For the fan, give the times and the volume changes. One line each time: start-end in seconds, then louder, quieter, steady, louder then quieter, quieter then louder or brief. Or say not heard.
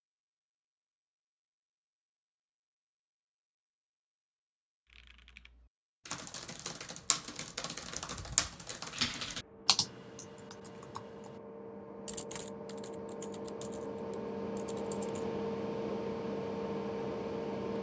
7.0-17.7 louder.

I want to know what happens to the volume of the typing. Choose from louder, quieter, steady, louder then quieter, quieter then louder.
louder then quieter.